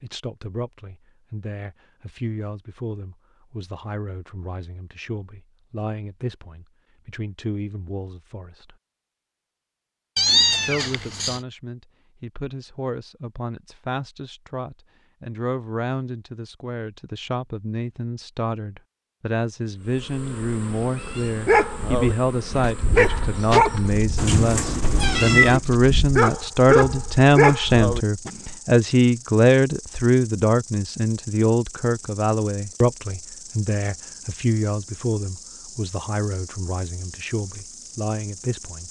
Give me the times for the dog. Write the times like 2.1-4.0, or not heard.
21.2-28.4.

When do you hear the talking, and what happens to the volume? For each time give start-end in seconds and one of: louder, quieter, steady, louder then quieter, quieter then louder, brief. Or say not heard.
0.0-8.8 steady
10.7-38.8 louder then quieter.